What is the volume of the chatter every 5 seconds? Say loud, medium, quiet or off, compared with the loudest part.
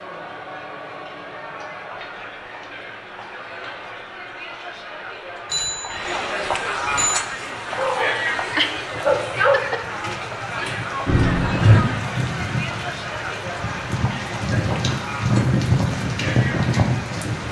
medium, loud, loud, medium.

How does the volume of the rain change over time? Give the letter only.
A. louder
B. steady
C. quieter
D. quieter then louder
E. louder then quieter
A.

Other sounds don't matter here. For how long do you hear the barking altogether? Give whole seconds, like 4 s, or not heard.
2 s.